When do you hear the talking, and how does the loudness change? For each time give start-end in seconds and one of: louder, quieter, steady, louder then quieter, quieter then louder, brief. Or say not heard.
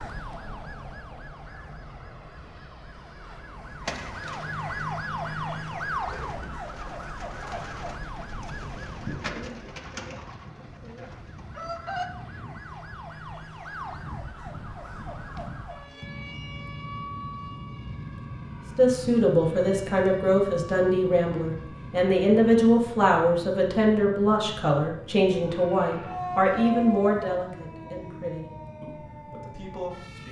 18.8-30.2 quieter.